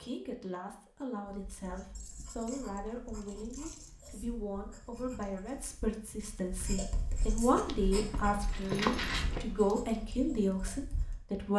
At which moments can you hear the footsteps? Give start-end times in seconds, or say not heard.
7.5-9.4.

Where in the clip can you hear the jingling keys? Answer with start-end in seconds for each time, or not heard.
1.9-4.0, 8.2-10.0.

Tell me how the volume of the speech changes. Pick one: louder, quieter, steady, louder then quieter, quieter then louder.
louder.